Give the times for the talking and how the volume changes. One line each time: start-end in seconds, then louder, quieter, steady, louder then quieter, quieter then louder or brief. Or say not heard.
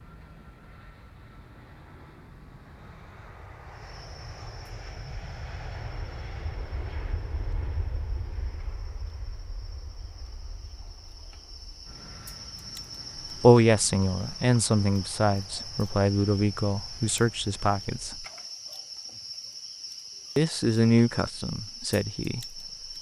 13.4-18.2 steady
20.4-22.6 brief.